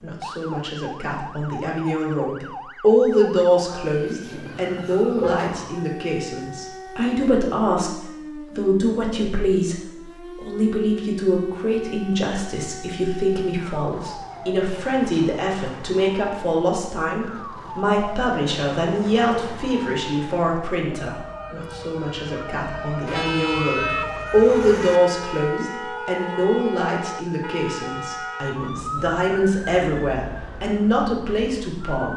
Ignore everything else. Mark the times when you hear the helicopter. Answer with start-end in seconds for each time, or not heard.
not heard.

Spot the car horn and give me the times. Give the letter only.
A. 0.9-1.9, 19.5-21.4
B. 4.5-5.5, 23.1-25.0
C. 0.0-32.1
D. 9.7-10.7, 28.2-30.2
B.